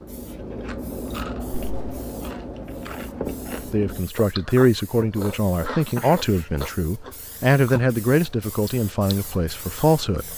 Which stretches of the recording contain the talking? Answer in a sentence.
The talking can be heard from 3.7 to 10.3 s.